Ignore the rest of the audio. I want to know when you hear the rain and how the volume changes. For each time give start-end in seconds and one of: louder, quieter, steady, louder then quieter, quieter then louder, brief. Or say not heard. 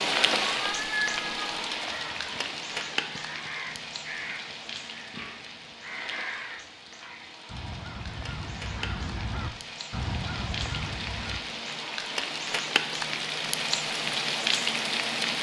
0.0-15.3 quieter then louder.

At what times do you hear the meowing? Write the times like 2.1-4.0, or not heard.
0.5-1.6.